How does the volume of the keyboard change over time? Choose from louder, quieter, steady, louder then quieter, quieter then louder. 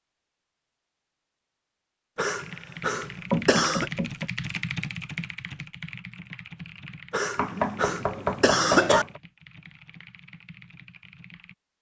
quieter.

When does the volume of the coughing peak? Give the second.
9 s.